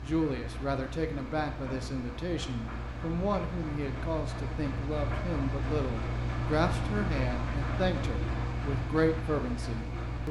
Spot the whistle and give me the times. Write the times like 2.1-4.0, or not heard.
not heard.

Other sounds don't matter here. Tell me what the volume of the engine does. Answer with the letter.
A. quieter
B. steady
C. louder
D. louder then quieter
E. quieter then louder
C.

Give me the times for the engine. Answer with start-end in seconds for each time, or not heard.
0.0-10.2.